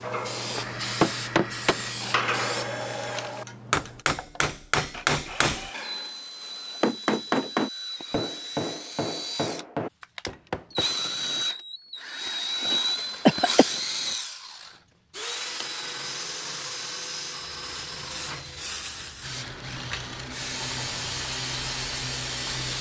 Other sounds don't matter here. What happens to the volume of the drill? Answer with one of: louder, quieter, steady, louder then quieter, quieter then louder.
louder then quieter.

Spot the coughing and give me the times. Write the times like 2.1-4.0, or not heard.
12.9-13.7.